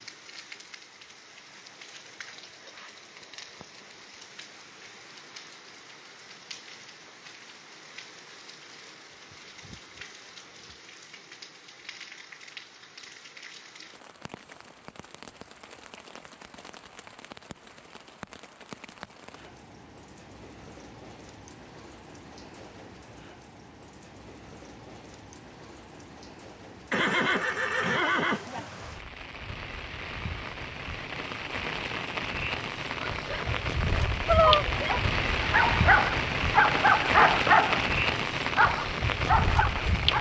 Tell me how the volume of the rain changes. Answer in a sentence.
The loudness of the rain goes up.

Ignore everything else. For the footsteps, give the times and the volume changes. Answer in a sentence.
You can't hear the footsteps here.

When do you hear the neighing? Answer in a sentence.
The neighing can be heard from 26.9 to 28.7 s.